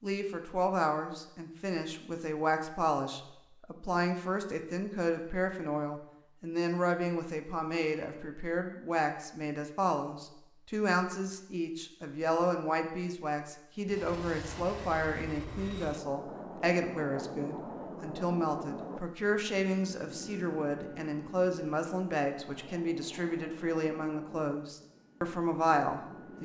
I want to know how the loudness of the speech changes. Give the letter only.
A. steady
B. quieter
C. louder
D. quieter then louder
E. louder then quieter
A.